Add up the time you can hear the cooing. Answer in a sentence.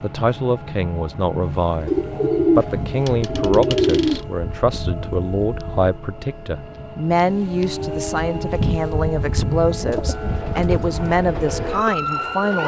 The cooing can be heard for 4 seconds in total.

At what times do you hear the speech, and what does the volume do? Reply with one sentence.
You can hear the speech from 0.0 to 12.6 s, at a steady volume.